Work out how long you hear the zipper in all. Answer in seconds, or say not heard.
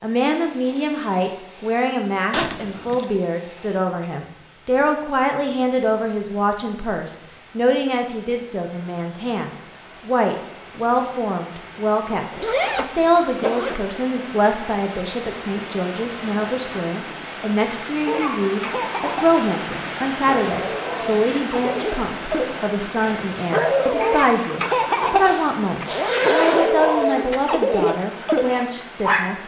4 s.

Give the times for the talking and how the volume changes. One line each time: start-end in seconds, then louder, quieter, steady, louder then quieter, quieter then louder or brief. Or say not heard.
0.0-29.4 steady.